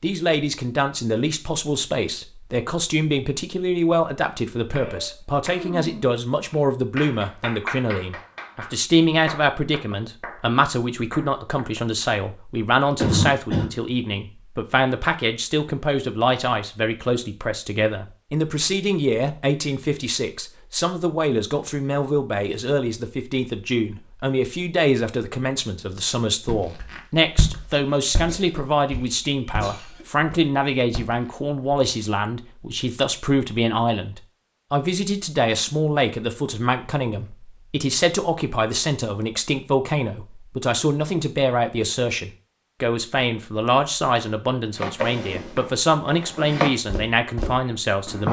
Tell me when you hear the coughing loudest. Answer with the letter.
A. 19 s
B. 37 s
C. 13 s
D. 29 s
C.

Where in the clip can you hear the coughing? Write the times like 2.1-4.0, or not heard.
13.0-13.7, 28.2-30.1.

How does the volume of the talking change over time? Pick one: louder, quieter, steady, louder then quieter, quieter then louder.
steady.